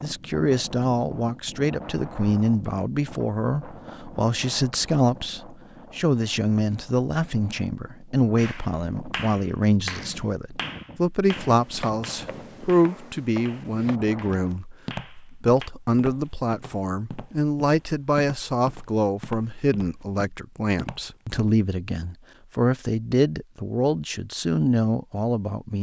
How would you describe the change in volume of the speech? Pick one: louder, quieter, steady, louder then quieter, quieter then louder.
steady.